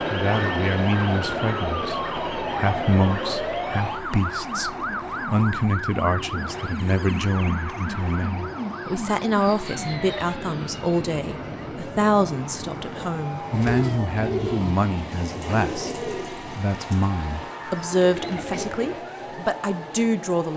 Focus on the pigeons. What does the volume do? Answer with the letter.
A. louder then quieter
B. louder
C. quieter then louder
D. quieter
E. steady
C.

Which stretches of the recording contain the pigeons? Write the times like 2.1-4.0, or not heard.
13.5-19.0.